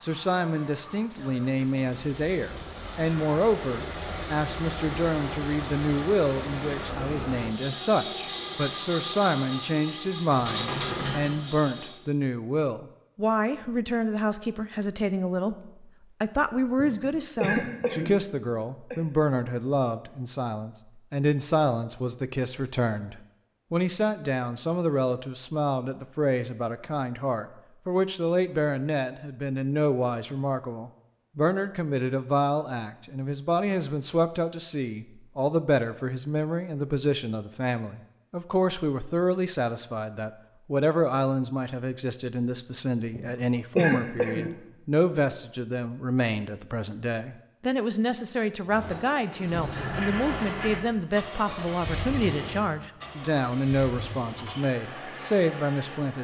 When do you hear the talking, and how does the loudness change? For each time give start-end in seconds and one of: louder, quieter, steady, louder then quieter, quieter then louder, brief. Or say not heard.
0.0-56.1 steady.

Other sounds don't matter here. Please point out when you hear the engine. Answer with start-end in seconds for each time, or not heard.
0.0-11.9, 48.6-56.1.